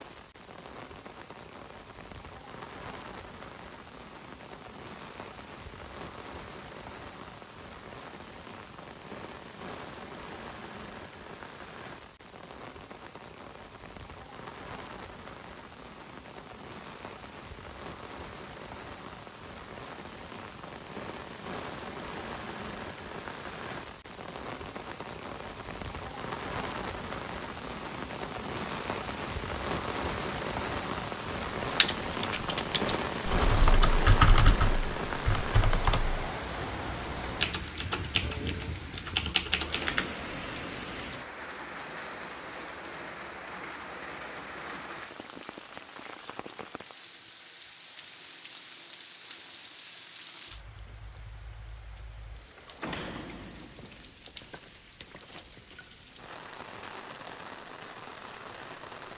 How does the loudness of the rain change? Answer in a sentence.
The loudness of the rain goes up, then down.